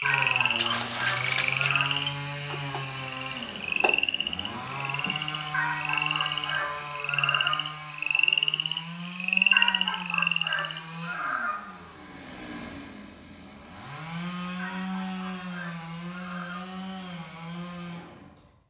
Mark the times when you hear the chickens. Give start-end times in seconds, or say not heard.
0.0-1.9, 5.5-7.5, 9.5-11.6, 14.6-16.6.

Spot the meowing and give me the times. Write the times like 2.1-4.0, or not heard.
0.6-1.8.